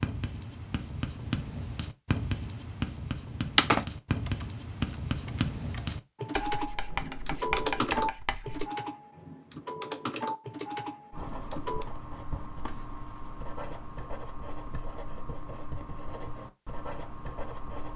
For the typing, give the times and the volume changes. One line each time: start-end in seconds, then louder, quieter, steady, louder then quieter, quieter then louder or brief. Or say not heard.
3.5-11.8 louder then quieter.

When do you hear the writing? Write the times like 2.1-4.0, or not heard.
0.0-8.7, 11.1-17.9.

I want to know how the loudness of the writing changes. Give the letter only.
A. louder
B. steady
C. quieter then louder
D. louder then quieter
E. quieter
E.